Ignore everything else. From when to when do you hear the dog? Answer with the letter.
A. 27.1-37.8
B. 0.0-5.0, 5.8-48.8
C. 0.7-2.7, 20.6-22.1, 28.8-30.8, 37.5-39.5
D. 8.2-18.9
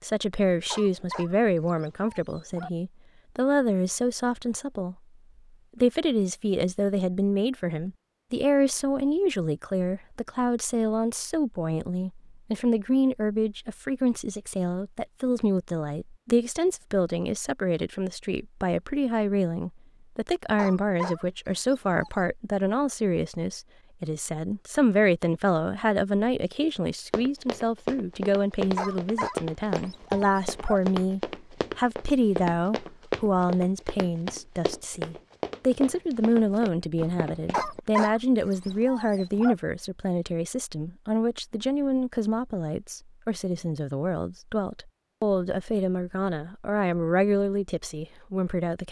C.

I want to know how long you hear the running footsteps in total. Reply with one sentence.
The running footsteps can be heard for 11 seconds in total.